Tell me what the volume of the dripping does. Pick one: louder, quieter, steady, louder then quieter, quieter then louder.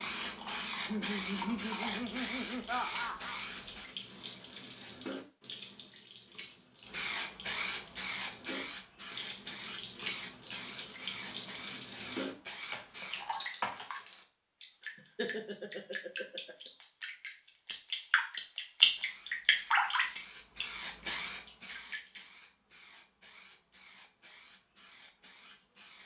louder.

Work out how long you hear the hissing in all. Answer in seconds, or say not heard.
18 s.